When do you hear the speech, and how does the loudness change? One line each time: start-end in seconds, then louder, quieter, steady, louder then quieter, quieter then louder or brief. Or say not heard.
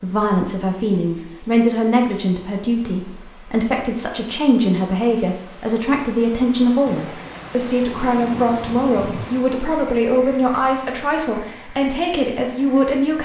0.0-13.2 steady.